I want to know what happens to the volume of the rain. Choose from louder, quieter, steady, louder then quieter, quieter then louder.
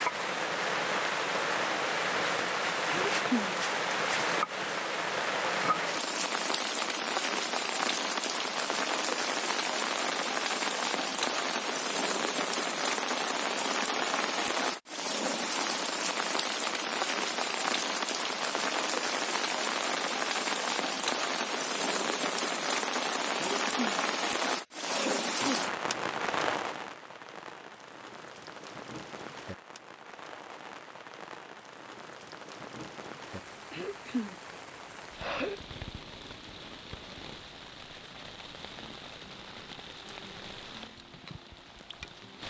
quieter.